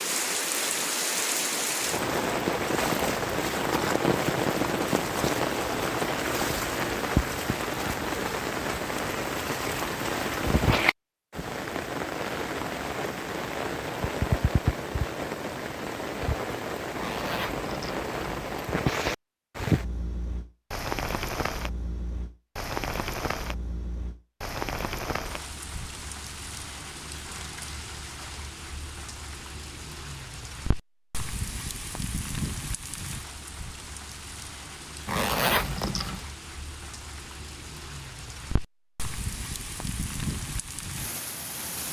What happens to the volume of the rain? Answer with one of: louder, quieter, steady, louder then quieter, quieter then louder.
quieter.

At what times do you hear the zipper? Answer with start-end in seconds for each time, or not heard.
16.9-18.4, 35.0-36.3.